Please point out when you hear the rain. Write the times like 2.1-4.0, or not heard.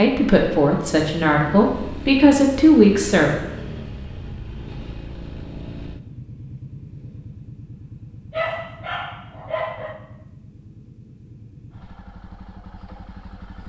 not heard.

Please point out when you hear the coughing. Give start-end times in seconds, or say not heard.
not heard.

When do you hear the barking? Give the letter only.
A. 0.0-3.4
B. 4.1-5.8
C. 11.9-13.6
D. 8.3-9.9
D.